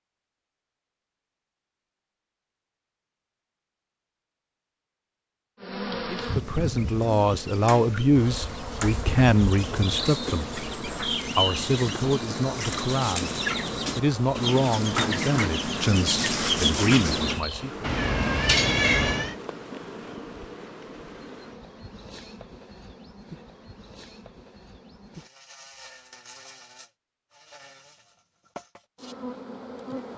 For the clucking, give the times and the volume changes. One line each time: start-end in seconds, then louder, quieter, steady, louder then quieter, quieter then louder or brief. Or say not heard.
6.3-17.4 louder.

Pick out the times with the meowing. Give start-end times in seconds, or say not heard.
17.8-19.4.